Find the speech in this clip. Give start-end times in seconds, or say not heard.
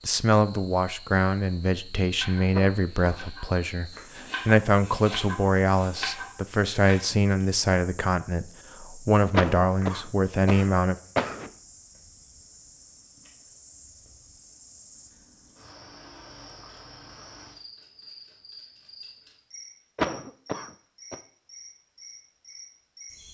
0.1-10.9.